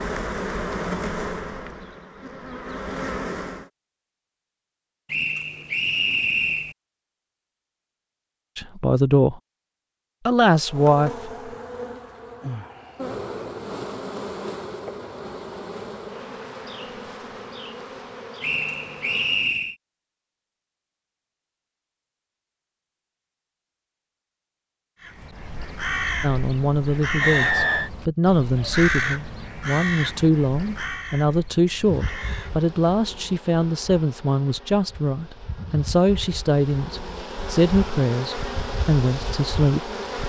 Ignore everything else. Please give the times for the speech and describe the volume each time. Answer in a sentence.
You can hear the speech briefly from 8.6 to 9.3 s; briefly from 10.2 to 11.5 s; and from 26.2 to 40.0 s, at a steady volume.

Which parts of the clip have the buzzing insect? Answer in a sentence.
The buzzing insect can be heard from 0.0 to 3.7 s, from 10.6 to 19.5 s and from 31.8 to 40.2 s.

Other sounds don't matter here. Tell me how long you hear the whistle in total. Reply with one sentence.
You can hear the whistle for 4 seconds altogether.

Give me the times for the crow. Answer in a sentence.
You can hear the crow from 25.0 to 32.7 s.